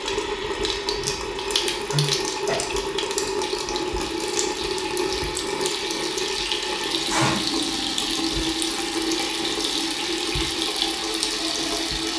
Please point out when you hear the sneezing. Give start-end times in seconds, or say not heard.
1.9-3.4, 6.7-7.5.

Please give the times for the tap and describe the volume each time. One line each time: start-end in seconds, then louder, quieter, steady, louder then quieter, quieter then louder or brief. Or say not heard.
0.0-12.1 steady.